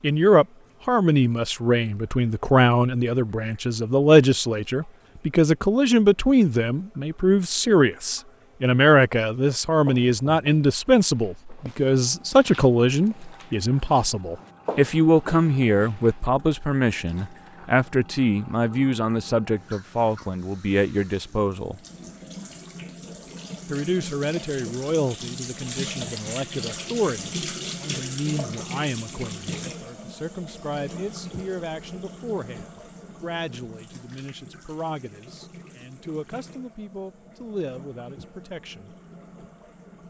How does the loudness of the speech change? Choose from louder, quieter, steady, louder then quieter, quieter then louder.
quieter.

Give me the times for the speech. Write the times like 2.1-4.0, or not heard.
0.0-21.8, 23.7-39.0.